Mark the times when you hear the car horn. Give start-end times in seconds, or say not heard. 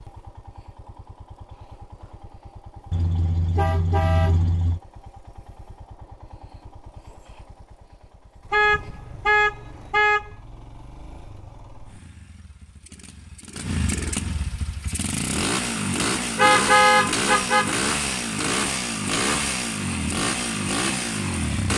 2.9-4.8, 8.5-10.3, 16.4-17.8.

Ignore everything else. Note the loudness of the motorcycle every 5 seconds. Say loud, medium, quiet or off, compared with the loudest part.
quiet, quiet, medium, loud, loud.